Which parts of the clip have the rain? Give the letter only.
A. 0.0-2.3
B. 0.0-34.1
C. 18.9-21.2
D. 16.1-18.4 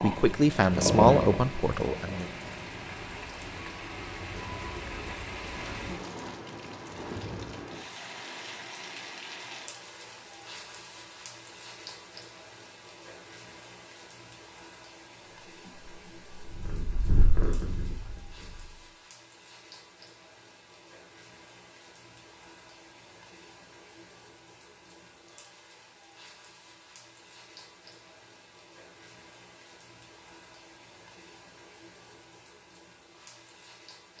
B.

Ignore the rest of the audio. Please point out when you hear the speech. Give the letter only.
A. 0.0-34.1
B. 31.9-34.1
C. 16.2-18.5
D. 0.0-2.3
D.